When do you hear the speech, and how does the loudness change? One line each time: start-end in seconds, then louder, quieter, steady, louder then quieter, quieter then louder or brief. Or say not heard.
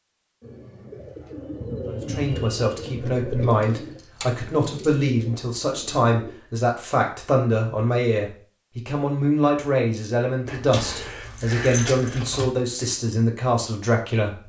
1.9-14.4 steady.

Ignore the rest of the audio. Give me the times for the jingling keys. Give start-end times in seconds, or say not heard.
3.5-5.0, 10.4-12.4.